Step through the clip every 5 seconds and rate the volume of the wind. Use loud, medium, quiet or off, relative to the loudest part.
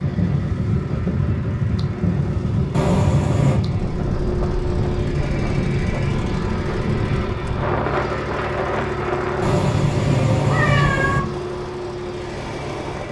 loud, loud, medium.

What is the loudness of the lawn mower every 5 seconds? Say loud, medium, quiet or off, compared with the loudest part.
medium, loud, loud.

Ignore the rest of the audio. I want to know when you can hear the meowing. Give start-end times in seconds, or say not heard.
2.7-3.6, 9.4-11.2.